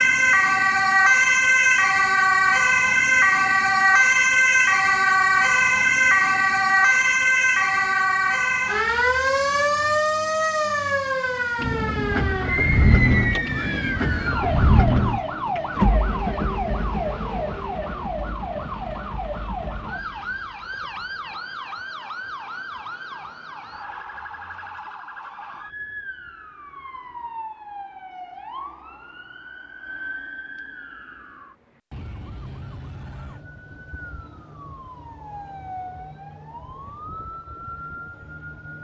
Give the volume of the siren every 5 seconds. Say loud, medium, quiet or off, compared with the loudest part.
loud, loud, medium, quiet, quiet, quiet, quiet, quiet.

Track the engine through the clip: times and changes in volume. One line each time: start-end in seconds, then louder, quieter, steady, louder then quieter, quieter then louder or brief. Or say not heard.
11.6-21.4 quieter.